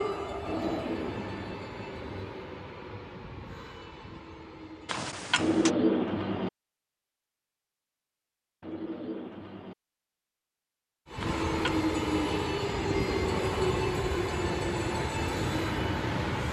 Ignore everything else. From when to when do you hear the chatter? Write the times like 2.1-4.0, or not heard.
not heard.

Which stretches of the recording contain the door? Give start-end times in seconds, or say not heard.
4.8-5.7, 11.2-11.8.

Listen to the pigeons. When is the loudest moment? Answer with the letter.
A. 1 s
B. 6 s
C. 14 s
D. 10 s
B.